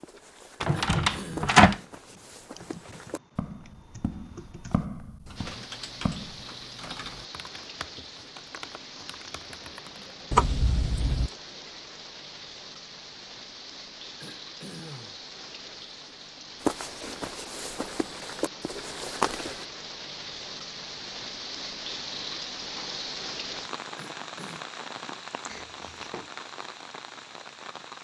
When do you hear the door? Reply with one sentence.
You can hear the door from 0.6 to 1.8 s, from 10.3 to 11.3 s and from 25.4 to 26.3 s.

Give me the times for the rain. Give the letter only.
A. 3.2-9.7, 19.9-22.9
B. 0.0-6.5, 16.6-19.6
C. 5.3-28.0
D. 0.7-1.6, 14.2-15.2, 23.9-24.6
C.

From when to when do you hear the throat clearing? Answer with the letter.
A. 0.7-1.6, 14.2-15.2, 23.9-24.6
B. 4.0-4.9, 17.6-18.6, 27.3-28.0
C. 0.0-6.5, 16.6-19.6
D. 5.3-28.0
A.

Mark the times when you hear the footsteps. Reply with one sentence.
You can hear the footsteps from 0.0 to 6.5 s and from 16.6 to 19.6 s.